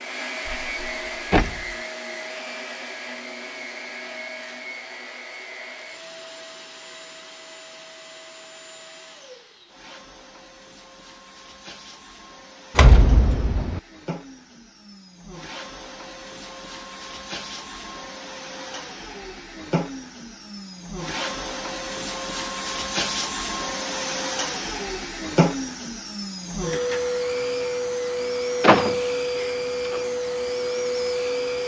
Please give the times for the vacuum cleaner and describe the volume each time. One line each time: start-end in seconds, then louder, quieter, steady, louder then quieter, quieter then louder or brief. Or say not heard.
0.0-31.6 quieter then louder.